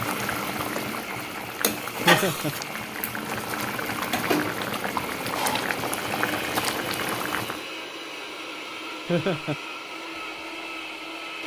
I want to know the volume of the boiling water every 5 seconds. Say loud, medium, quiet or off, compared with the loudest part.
loud, loud, off.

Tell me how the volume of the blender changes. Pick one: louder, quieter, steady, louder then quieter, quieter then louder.
steady.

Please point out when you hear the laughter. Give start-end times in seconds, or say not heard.
2.0-2.5, 9.1-9.6.